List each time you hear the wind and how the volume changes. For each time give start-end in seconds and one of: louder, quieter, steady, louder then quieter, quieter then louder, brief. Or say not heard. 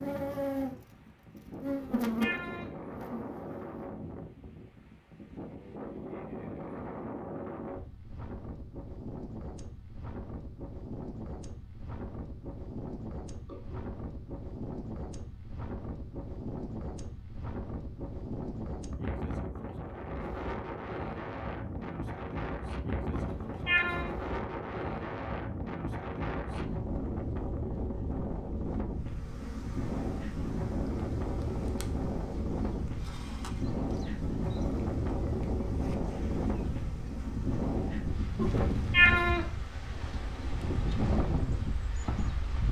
0.0-42.6 louder.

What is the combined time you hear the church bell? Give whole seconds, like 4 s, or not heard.
not heard.